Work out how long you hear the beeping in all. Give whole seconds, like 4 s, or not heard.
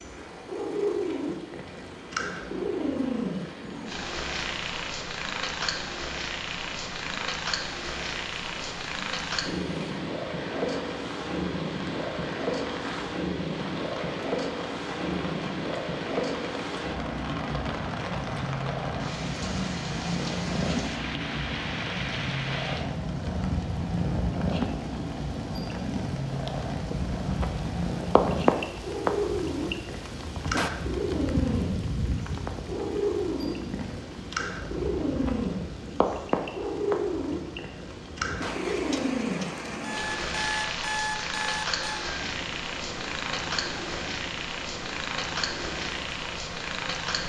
2 s.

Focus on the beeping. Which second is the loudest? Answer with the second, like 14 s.
41 s.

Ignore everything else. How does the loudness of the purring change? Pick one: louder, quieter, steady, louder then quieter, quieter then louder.
steady.